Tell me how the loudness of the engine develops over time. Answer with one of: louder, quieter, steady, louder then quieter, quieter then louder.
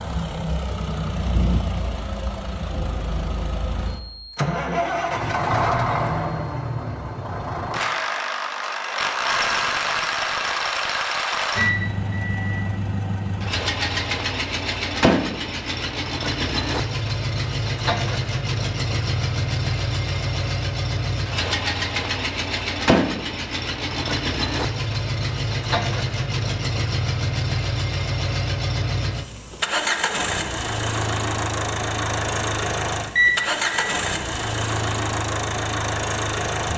steady.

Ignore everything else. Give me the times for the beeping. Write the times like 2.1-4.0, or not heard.
11.6-12.7, 33.1-34.0.